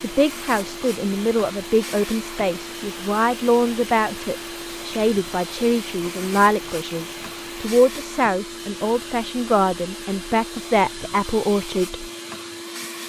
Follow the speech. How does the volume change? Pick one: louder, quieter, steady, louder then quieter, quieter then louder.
steady.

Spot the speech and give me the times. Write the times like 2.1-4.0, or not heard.
0.0-12.1.